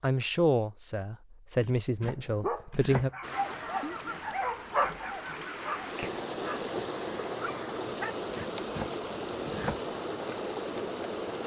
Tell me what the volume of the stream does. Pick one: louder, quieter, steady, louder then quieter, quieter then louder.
louder.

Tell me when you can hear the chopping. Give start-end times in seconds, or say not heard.
1.6-3.1, 8.3-9.8.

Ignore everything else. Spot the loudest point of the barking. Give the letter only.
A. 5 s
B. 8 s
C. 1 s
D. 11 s
A.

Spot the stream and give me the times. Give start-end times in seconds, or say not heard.
3.2-11.4.